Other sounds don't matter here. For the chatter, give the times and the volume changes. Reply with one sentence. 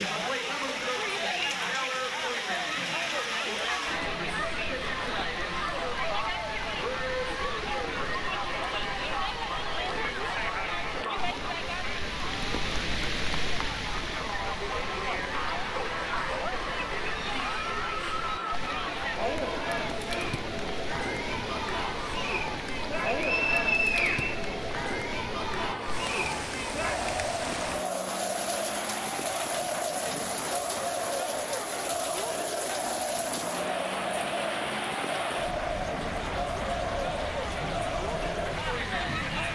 You can hear the chatter from 0.0 to 39.4 s, at a steady volume.